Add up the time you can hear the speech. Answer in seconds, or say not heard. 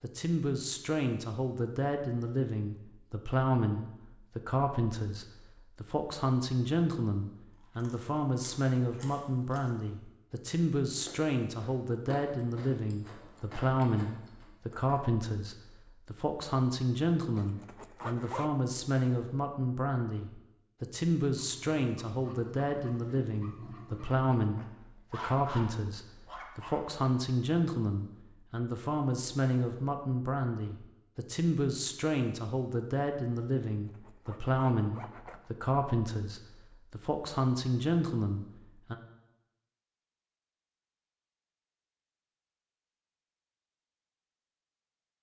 39 s.